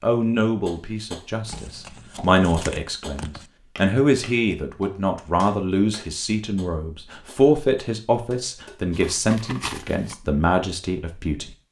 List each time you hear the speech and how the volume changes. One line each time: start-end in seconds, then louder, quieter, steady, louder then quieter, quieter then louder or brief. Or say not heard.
0.0-11.5 steady.